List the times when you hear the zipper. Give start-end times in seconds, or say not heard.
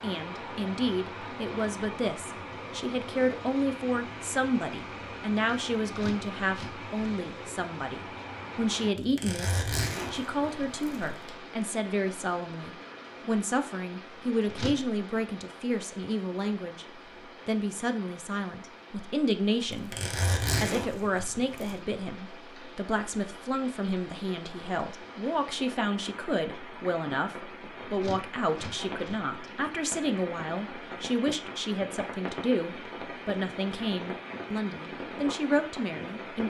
8.9-11.3, 19.7-21.8.